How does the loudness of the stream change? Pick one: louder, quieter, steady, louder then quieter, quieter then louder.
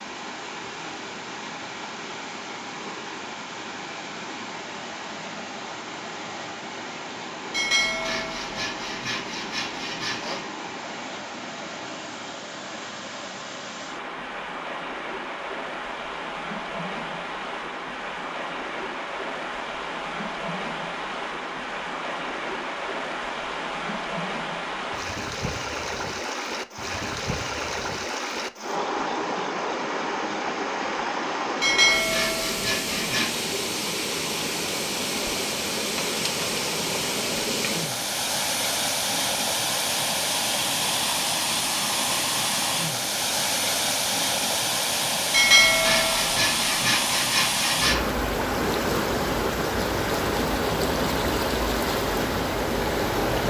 louder.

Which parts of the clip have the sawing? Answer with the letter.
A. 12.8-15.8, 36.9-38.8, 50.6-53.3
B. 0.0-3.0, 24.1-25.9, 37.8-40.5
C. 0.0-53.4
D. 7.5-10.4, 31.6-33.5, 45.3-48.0
D.